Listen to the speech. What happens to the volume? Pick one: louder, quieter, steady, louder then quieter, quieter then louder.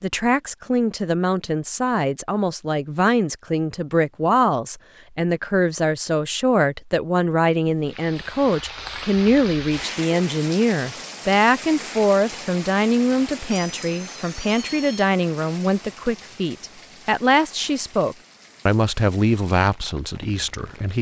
steady.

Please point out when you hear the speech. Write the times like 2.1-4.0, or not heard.
0.0-20.9.